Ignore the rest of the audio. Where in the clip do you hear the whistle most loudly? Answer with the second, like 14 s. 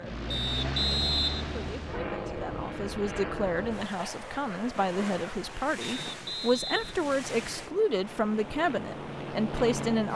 1 s.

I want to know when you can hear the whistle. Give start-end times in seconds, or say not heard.
0.3-1.9, 5.8-7.5.